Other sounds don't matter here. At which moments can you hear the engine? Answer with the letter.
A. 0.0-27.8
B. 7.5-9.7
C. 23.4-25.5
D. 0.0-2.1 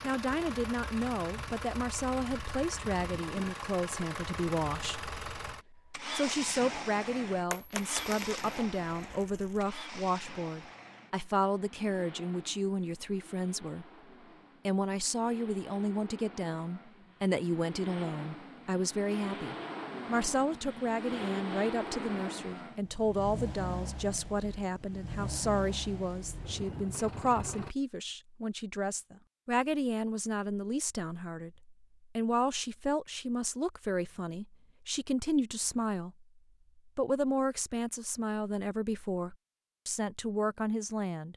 A.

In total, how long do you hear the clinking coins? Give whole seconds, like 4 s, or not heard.
2 s.